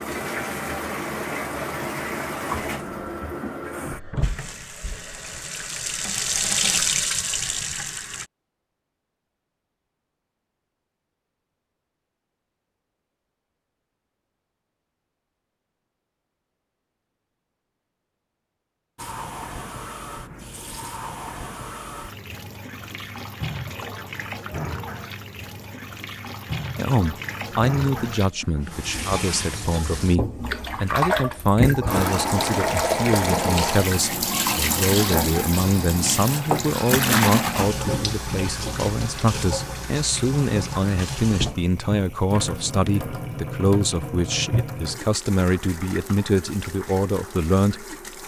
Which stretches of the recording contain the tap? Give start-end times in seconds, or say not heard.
0.0-8.3, 18.9-48.2.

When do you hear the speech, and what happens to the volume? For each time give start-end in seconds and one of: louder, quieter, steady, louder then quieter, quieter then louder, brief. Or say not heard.
26.8-48.0 steady.